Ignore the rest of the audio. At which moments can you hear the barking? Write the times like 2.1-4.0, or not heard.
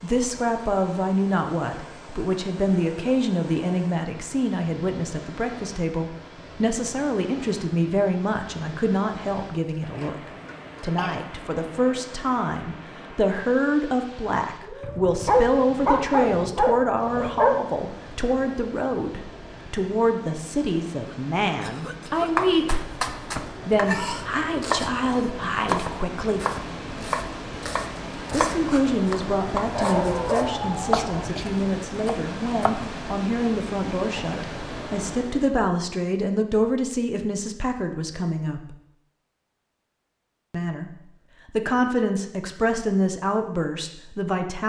14.8-17.6, 29.6-31.2.